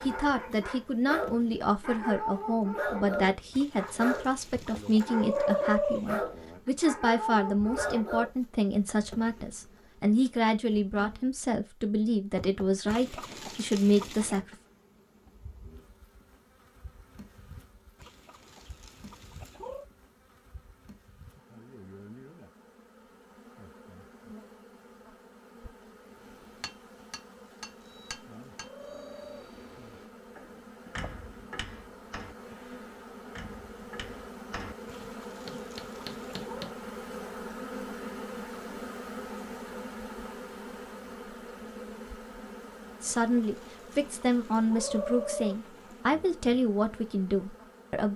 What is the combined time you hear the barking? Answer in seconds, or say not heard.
8 s.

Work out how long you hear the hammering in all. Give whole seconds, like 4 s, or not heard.
11 s.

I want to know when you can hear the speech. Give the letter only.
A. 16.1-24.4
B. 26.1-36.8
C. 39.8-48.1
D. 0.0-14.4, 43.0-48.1
D.